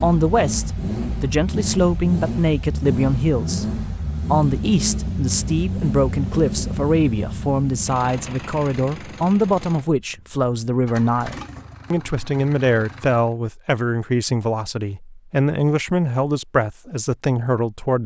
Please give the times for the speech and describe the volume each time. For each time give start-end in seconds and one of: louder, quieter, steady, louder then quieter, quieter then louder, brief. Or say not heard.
0.0-18.0 steady.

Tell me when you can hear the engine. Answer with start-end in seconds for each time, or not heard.
0.0-13.3.